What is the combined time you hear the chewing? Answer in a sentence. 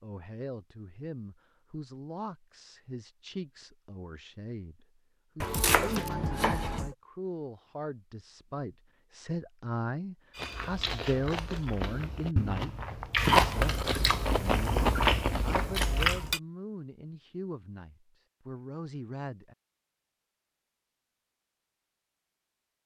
The chewing can be heard for 6 seconds in total.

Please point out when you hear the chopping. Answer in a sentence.
The chopping can be heard from 5.4 to 7.0 s.